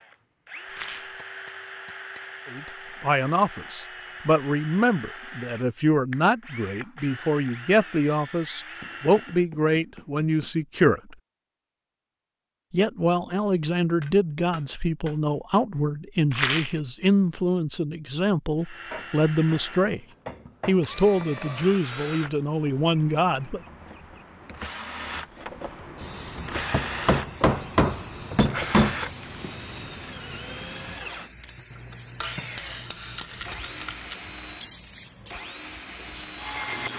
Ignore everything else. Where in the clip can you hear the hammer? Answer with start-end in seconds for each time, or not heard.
0.6-2.4, 8.8-10.5, 14.0-15.2, 18.9-20.8, 26.7-29.0, 31.7-34.0.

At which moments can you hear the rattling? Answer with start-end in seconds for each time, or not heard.
0.7-1.2, 16.3-16.8, 33.0-34.2.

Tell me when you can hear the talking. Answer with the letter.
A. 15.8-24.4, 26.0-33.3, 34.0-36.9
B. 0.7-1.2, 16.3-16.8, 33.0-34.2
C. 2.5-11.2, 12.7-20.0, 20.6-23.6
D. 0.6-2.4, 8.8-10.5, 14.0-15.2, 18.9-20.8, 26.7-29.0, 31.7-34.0
C.